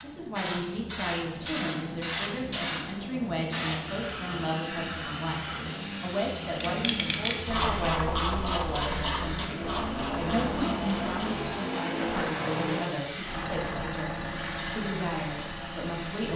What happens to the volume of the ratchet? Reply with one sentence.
The volume of the ratchet goes down.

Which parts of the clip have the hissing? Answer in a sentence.
The hissing can be heard from 0.0 to 16.3 s.